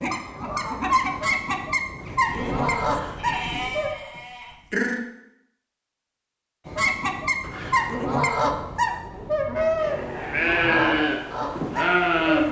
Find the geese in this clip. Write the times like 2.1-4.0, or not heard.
0.0-3.9, 6.7-12.4.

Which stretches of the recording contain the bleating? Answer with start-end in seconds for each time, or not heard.
2.1-5.0, 9.8-12.4.